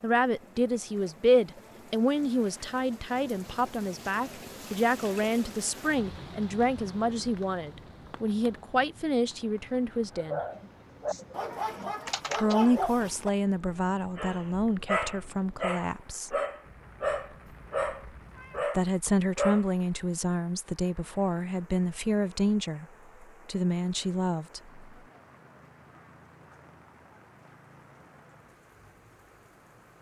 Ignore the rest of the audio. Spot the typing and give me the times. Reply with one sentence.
The typing can be heard from 10.5 to 12.6 s.